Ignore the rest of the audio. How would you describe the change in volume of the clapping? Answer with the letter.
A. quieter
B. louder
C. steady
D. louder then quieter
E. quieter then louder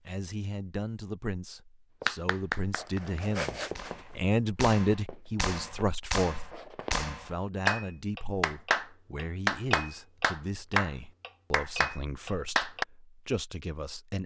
B.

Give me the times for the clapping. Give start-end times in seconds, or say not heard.
2.0-12.8.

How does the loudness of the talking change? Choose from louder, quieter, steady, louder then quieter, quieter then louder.
louder then quieter.